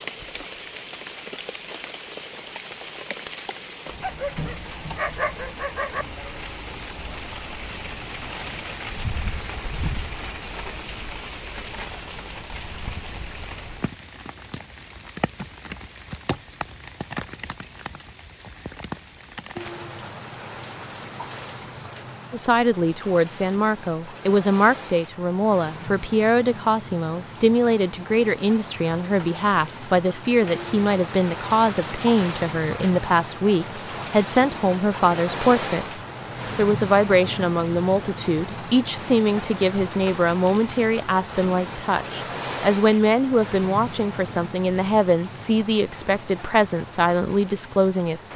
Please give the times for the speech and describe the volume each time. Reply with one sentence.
You can hear the speech from 22.3 to 35.9 s, at a steady volume; and from 36.5 to 48.3 s, at a steady volume.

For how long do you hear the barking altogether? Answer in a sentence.
The barking can be heard for 2 seconds in total.